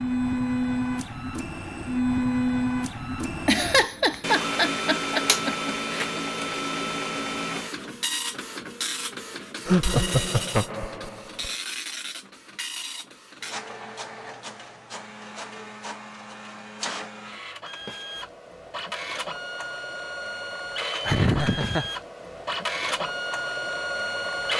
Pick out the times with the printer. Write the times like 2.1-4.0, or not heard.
0.0-24.5.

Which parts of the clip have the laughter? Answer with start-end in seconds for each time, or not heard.
3.5-6.2, 9.7-11.5, 21.1-21.9.